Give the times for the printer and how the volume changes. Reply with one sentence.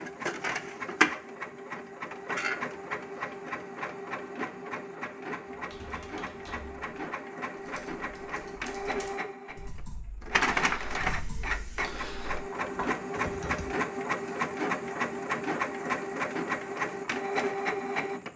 You can hear the printer from 0.0 to 18.3 s, getting quieter then louder.